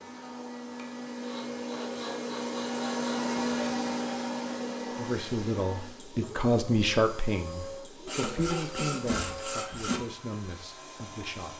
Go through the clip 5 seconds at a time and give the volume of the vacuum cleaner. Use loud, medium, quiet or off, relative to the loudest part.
loud, medium, quiet.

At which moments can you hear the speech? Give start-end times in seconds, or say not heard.
5.0-11.5.